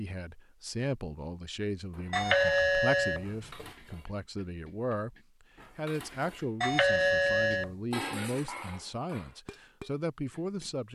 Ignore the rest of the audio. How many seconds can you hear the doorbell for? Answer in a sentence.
The doorbell can be heard for 3 seconds in total.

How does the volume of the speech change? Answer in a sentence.
The loudness of the speech stays about the same.